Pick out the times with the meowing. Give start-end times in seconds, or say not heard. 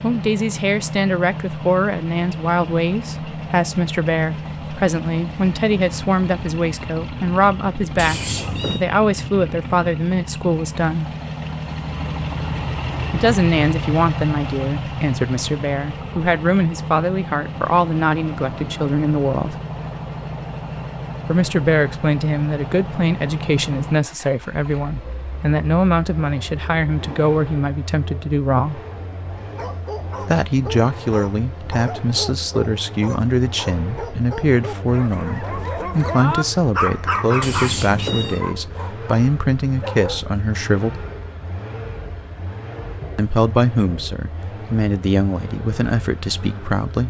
8.0-8.8, 37.4-38.5.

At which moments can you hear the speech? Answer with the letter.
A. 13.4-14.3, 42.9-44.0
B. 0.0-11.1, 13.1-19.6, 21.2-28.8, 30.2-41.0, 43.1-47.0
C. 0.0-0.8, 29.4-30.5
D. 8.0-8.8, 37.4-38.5
B.